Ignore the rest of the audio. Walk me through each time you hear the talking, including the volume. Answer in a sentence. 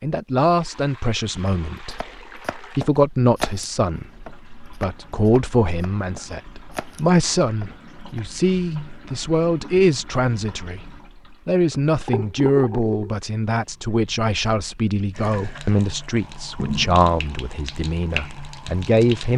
You can hear the talking from 0.0 to 19.3 s, at a steady volume.